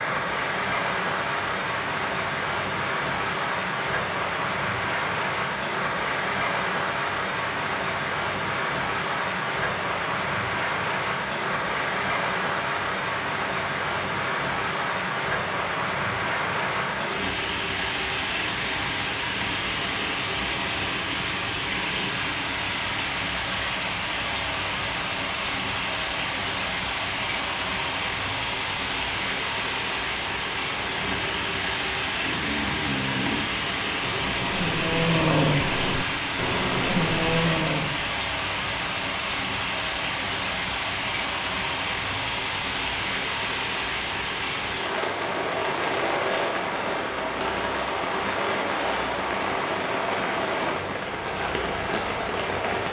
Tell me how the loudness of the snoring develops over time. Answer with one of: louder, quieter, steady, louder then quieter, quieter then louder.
louder.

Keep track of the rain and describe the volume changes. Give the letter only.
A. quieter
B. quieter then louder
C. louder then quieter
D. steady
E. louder
D.